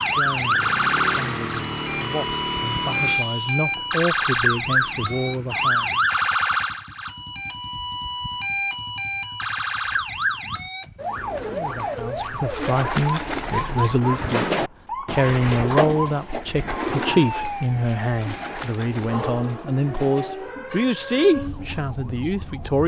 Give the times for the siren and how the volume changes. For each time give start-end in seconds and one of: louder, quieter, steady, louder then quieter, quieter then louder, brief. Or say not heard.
0.0-22.8 quieter.